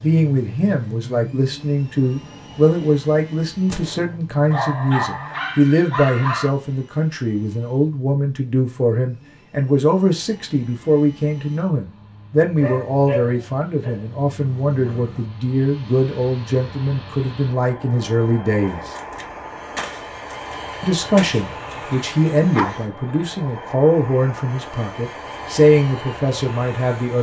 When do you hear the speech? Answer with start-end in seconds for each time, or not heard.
0.0-18.9, 20.8-27.1.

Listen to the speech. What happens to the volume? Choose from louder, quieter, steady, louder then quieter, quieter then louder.
steady.